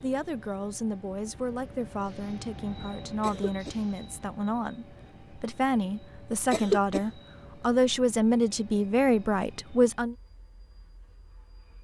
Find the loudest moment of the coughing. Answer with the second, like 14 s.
7 s.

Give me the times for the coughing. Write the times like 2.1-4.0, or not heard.
3.2-3.8, 6.5-7.0.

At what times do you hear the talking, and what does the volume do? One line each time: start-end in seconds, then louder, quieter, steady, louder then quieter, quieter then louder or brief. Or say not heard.
0.0-10.2 louder.